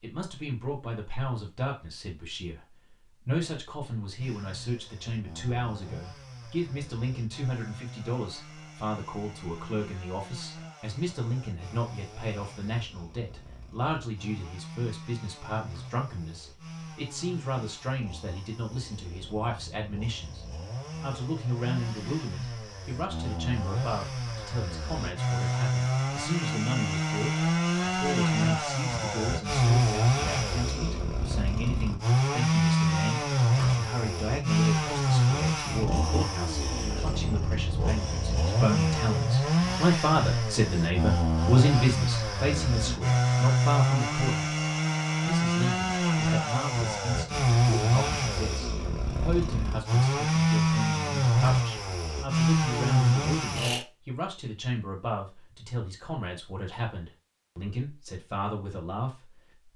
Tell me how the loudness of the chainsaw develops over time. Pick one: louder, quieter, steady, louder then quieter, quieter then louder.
louder.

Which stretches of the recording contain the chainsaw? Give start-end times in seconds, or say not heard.
4.2-53.9.